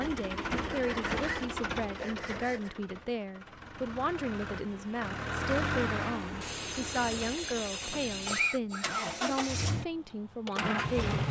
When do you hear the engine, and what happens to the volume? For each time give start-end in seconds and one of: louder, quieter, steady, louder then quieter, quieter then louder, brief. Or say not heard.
0.0-11.2 quieter then louder.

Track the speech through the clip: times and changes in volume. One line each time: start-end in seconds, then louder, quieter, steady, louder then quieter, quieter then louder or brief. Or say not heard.
0.0-11.2 steady.